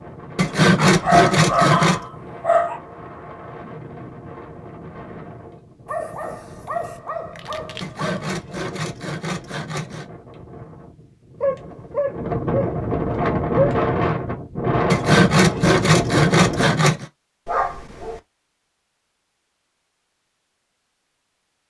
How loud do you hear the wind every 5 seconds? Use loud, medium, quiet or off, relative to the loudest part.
quiet, quiet, loud, loud, off.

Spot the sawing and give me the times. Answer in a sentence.
The sawing can be heard from 0.3 to 2.0 s, from 7.8 to 10.1 s and from 14.9 to 17.1 s.